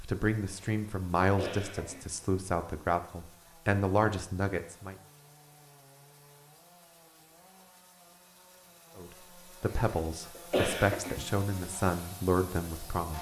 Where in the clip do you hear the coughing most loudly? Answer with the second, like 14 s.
11 s.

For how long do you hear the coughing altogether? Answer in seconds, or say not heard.
3 s.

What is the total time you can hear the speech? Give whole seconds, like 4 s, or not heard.
9 s.